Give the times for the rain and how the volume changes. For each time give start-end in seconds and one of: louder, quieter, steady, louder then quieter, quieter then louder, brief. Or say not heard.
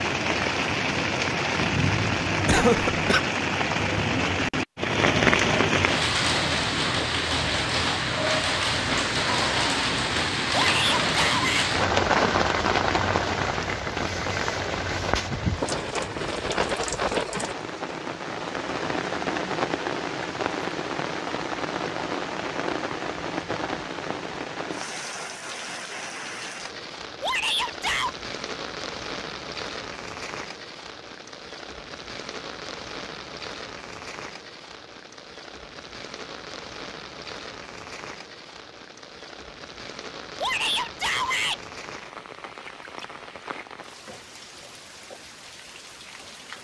0.0-46.5 quieter.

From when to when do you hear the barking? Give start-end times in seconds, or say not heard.
not heard.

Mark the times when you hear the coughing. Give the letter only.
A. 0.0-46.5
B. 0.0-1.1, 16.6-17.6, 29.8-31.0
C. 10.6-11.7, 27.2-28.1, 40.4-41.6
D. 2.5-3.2
D.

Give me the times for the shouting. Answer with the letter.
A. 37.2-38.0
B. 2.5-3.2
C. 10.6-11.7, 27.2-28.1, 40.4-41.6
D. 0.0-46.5
C.